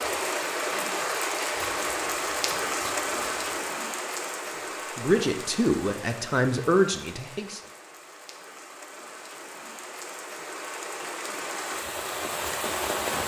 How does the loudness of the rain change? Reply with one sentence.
The volume of the rain goes down, then up.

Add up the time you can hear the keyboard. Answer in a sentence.
You can't hear the keyboard here.